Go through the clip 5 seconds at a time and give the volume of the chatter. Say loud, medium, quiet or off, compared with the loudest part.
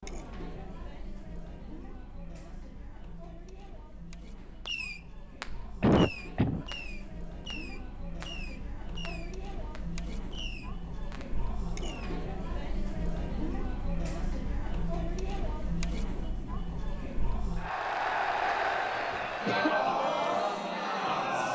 quiet, quiet, medium, loud, loud.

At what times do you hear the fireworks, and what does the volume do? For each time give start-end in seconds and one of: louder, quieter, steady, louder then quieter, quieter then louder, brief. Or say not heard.
4.7-12.2 quieter.